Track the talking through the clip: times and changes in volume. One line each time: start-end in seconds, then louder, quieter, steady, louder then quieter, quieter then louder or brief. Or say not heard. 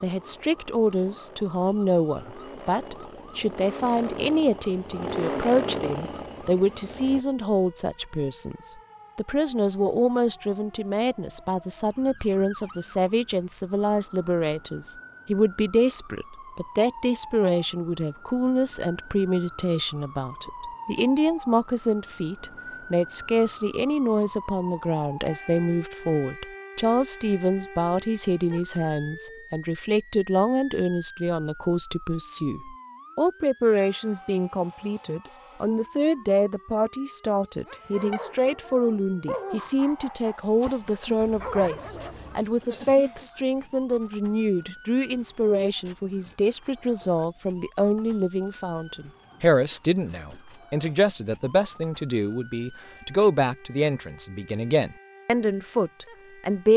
0.0-56.7 steady.